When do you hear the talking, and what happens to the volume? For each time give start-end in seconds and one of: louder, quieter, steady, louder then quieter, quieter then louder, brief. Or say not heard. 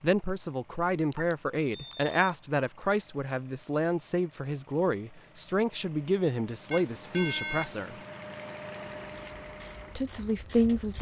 0.0-8.0 steady
9.9-10.9 brief.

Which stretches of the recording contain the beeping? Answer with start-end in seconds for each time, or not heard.
1.1-2.4, 6.7-8.1.